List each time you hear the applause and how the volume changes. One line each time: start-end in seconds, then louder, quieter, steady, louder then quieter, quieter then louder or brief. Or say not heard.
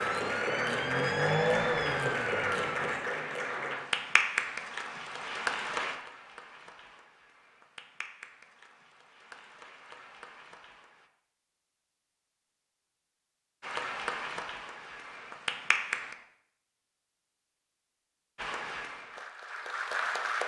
0.0-11.1 quieter
13.6-16.1 brief
18.4-20.4 brief.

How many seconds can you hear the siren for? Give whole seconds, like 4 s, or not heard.
3 s.